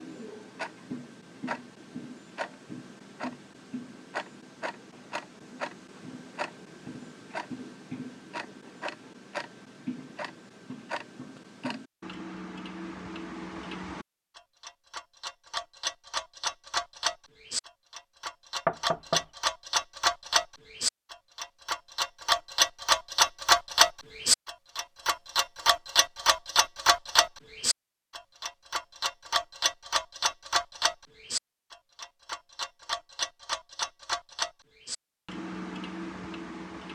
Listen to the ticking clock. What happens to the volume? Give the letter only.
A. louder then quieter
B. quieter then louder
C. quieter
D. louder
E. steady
A.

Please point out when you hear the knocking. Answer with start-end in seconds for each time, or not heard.
18.6-19.2.